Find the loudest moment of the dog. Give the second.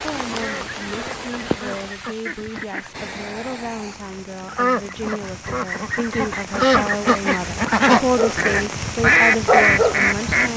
10 s.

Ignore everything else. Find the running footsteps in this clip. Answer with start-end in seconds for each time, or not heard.
not heard.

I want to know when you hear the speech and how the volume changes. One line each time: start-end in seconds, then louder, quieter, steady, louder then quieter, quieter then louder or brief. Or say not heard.
0.0-10.5 louder.